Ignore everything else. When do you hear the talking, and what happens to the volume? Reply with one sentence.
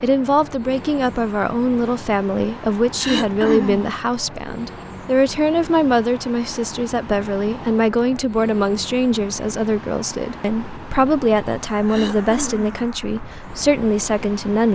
The talking can be heard from 0.0 to 14.6 s, at a steady volume.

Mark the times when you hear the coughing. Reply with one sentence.
You can hear the coughing from 3.0 to 3.9 s and from 11.8 to 12.7 s.